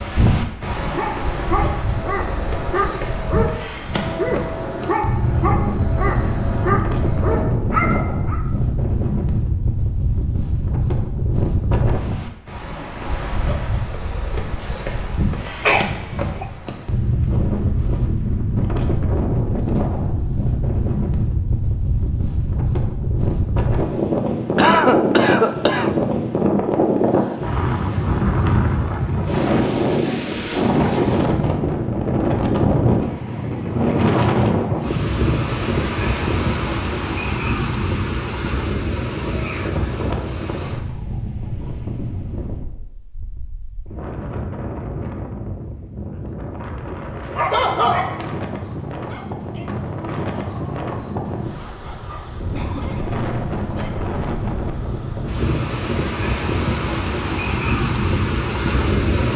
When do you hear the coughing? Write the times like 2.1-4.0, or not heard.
15.6-16.4, 24.6-25.9, 52.5-53.2.